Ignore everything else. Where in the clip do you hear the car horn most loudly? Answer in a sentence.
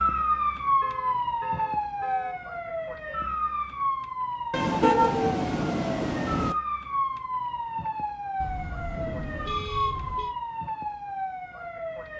The volume of the car horn peaks at 5 seconds.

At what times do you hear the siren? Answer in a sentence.
You can hear the siren from 0.0 to 12.1 s.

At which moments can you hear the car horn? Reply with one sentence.
You can hear the car horn from 0.8 to 2.4 s, from 4.5 to 6.5 s and from 8.4 to 10.3 s.